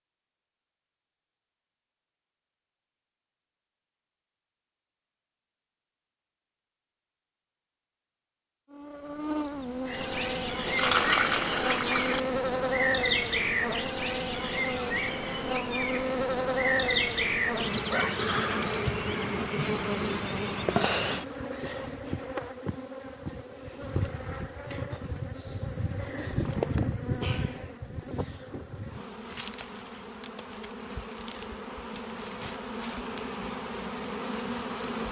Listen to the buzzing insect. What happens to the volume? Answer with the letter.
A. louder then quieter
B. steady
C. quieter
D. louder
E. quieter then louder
C.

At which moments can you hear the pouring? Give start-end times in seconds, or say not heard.
10.7-12.2.